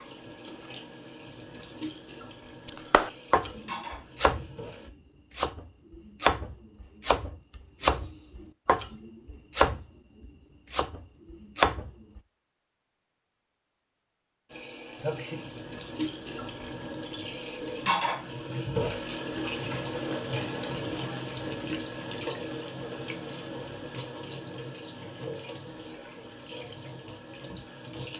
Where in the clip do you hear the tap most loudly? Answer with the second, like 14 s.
18 s.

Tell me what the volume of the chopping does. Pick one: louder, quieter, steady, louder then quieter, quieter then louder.
steady.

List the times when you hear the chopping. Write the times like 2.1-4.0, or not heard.
2.6-12.2.